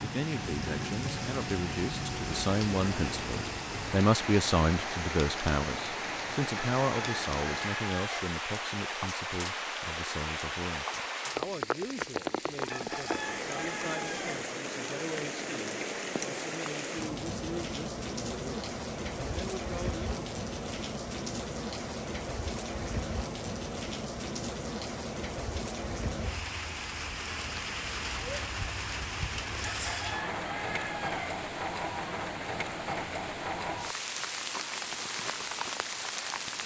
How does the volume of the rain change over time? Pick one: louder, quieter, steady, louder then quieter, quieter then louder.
steady.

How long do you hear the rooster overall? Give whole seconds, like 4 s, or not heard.
5 s.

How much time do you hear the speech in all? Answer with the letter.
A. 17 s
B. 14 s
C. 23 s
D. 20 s
D.